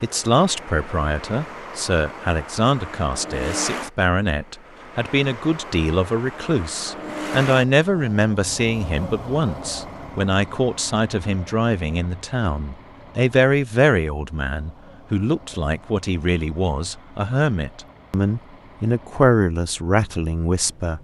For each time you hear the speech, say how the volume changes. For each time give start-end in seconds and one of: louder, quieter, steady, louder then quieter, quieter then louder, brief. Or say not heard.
0.0-20.9 steady.